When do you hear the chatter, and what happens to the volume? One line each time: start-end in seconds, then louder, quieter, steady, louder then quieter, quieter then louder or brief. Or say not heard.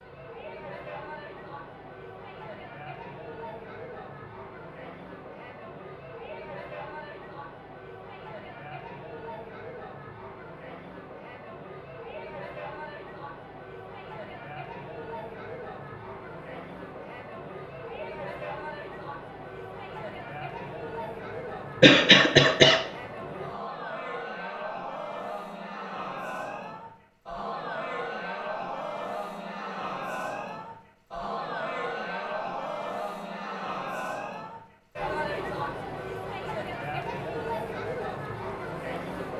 0.0-39.3 louder.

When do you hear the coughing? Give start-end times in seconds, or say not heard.
21.8-22.9.